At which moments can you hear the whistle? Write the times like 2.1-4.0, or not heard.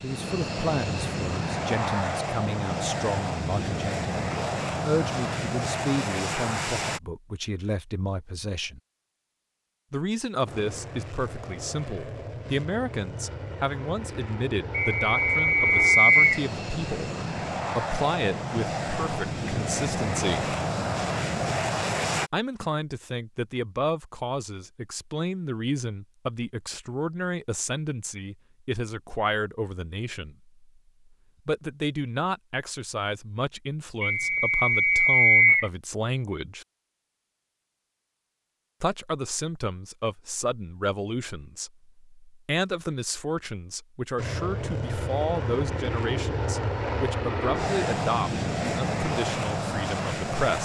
14.7-16.4, 34.0-35.7.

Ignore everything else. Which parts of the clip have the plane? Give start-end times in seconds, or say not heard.
0.0-7.0, 10.4-22.3, 44.1-50.6.